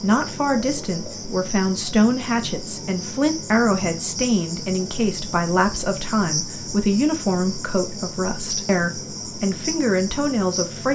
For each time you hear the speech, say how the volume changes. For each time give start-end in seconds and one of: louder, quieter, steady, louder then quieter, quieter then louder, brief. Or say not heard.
0.0-10.9 steady.